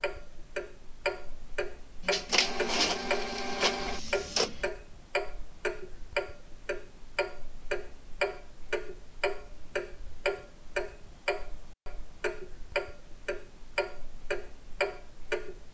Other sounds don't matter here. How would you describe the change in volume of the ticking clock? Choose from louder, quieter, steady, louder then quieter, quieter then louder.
steady.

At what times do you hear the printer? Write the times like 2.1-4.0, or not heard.
2.0-4.7.